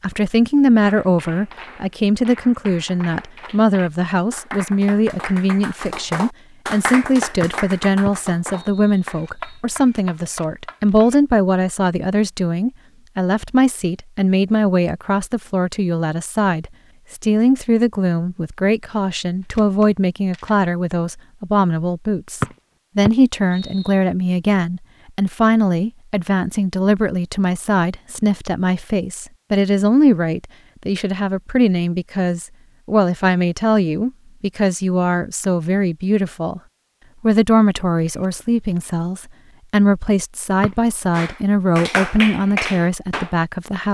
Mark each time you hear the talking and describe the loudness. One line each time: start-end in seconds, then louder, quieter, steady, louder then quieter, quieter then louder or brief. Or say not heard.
0.0-36.6 steady
37.2-43.8 steady.